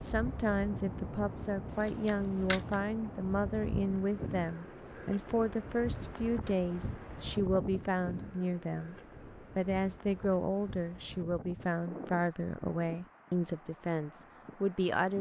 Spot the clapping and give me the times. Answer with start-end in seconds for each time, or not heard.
not heard.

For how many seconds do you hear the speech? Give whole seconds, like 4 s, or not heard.
15 s.